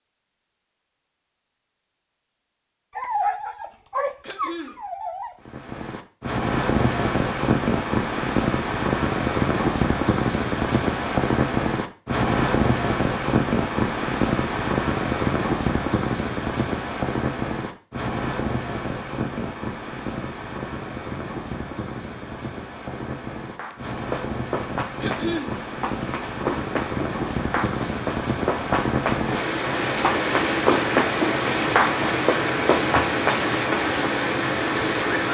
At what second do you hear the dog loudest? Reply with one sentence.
The volume of the dog peaks at 3 seconds.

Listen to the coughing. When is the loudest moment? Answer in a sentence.
The volume of the coughing peaks at 25 seconds.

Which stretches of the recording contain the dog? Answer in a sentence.
You can hear the dog from 3.0 to 5.3 s.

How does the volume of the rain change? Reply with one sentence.
The volume of the rain goes down, then up.